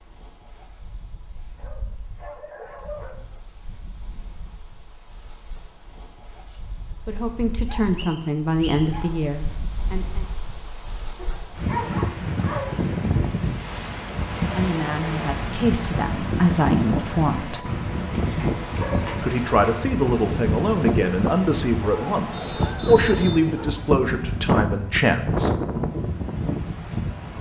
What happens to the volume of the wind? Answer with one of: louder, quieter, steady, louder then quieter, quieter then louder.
louder.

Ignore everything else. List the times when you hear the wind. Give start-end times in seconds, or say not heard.
0.0-27.3.